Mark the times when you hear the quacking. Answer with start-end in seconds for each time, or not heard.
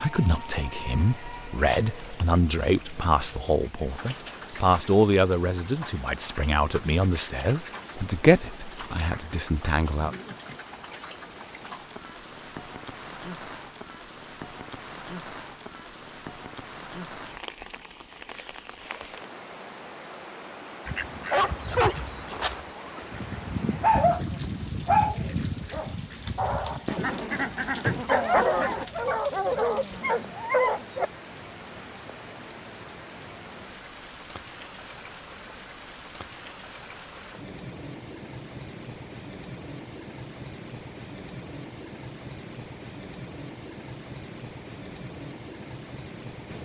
20.9-28.9.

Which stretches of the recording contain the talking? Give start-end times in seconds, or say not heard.
0.0-10.1.